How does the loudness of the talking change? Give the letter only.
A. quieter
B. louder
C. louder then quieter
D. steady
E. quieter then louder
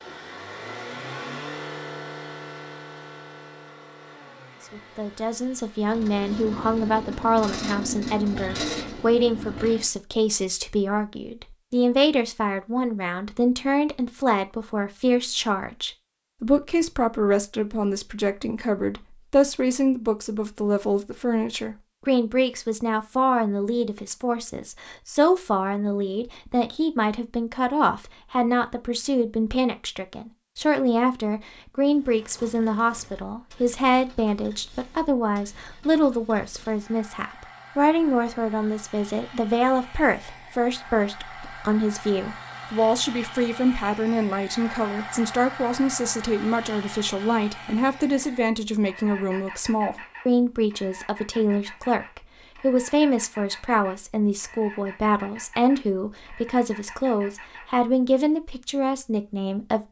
D.